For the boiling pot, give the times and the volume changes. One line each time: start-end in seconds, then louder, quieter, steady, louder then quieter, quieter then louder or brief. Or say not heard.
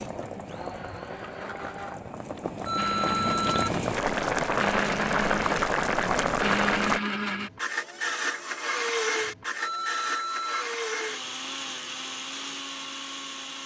0.0-7.0 louder.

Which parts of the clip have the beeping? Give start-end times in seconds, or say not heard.
2.6-3.7, 9.6-10.7.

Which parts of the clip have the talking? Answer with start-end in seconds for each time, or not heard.
not heard.